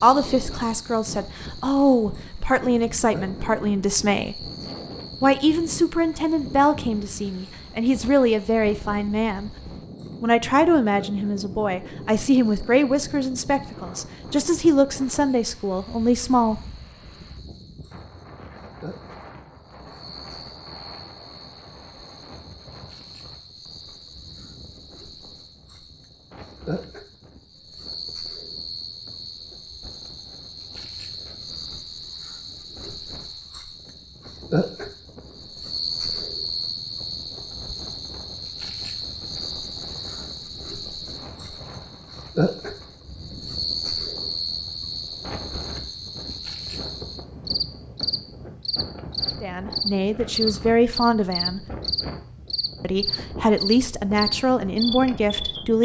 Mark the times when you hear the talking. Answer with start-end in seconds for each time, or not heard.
0.0-4.5, 5.2-9.5, 10.2-16.6, 49.4-51.6, 52.8-55.8.